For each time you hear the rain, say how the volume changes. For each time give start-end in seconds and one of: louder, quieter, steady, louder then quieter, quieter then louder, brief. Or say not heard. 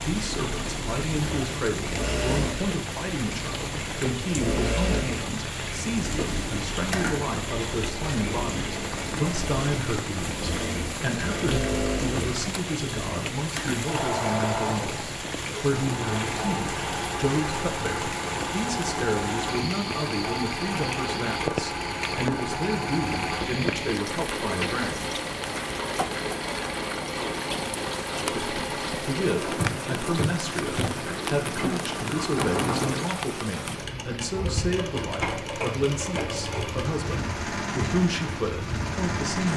0.0-39.5 steady.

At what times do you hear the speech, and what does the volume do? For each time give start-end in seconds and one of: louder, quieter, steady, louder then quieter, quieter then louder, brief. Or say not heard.
0.0-25.1 steady
28.2-39.5 steady.